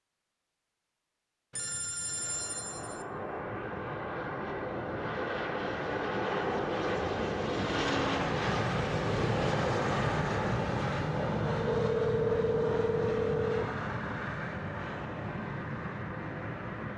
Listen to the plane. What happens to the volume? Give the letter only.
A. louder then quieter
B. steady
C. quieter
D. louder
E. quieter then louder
A.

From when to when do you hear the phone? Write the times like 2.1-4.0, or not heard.
1.5-3.0, 11.7-13.7.